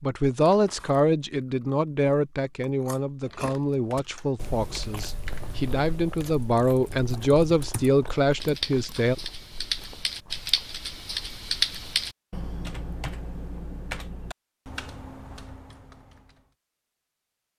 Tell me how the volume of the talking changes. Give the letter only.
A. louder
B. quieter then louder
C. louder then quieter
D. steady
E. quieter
B.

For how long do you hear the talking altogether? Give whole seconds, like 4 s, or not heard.
9 s.